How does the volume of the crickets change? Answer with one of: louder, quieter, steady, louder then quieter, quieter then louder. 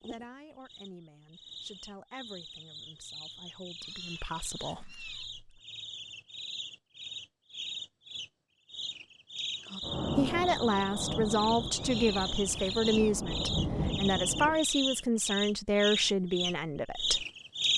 louder.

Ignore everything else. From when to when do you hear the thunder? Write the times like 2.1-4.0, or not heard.
9.8-14.6.